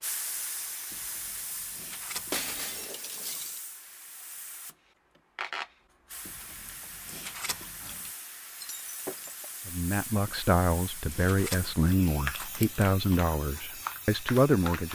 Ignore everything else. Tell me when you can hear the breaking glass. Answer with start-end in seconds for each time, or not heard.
2.3-3.6, 8.6-9.5.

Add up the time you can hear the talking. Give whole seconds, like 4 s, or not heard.
5 s.